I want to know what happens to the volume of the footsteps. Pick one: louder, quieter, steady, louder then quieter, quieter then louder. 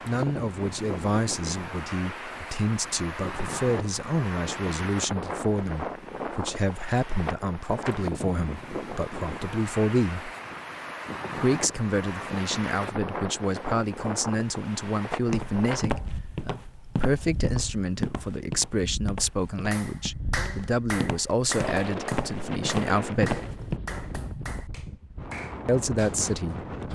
quieter then louder.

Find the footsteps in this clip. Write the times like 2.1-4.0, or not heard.
15.1-23.8.